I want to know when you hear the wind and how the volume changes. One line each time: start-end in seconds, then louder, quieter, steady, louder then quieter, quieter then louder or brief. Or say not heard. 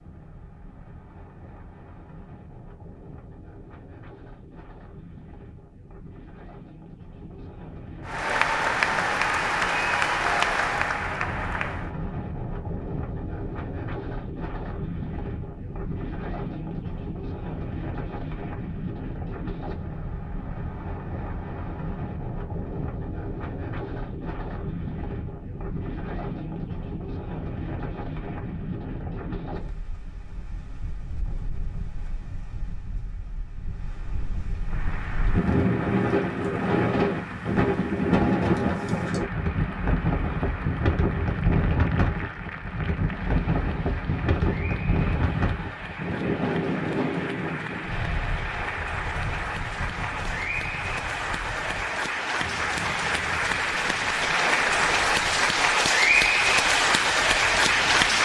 0.0-58.1 louder then quieter.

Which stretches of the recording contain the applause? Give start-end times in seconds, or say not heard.
8.1-11.9, 34.6-58.1.